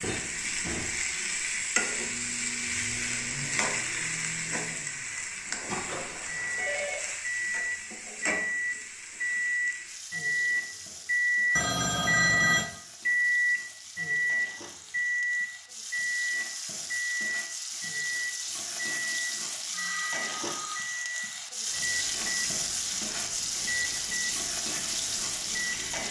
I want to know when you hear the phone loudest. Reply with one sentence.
The loudest moment of the phone is at 12 seconds.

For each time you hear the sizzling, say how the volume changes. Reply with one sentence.
You can hear the sizzling from 0.0 to 26.0 s, getting quieter then louder.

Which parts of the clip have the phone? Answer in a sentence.
The phone can be heard from 6.0 to 7.2 s, from 11.6 to 12.7 s and from 19.7 to 20.9 s.